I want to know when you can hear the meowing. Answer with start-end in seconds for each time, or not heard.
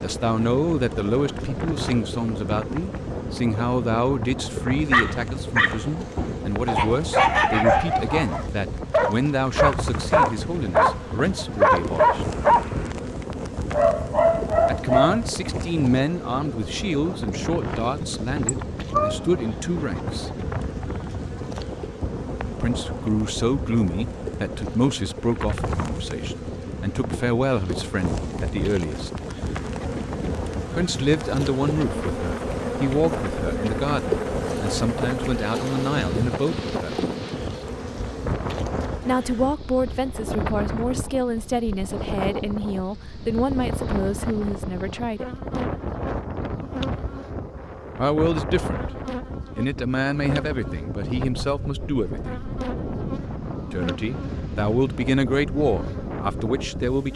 18.0-19.2.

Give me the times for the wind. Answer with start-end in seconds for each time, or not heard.
0.0-57.1.